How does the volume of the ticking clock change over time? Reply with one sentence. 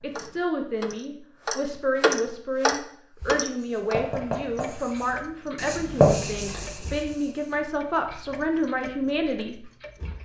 The volume of the ticking clock goes down.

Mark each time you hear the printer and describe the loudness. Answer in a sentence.
You can't hear the printer here.